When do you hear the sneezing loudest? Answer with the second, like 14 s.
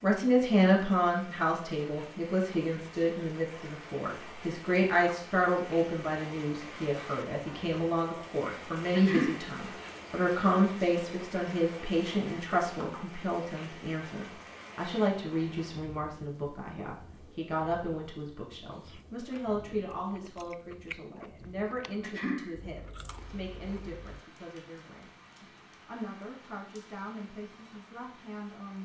9 s.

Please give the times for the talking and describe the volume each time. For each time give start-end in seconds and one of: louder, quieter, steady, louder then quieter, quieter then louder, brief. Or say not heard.
0.0-28.8 quieter.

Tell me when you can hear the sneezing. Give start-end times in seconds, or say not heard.
8.9-9.4, 22.0-22.5.